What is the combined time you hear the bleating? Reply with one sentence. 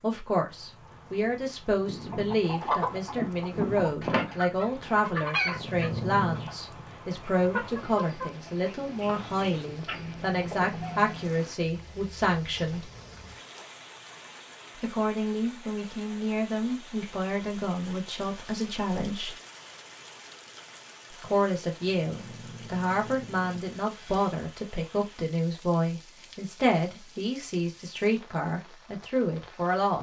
The bleating can't be heard in this clip.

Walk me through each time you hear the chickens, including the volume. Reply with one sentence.
The chickens can be heard from 1.8 to 11.3 s, getting quieter then louder.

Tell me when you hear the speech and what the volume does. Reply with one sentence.
You can hear the speech from 0.0 to 12.8 s, at a steady volume; from 14.8 to 19.4 s, at a steady volume; and from 21.2 to 29.9 s, at a steady volume.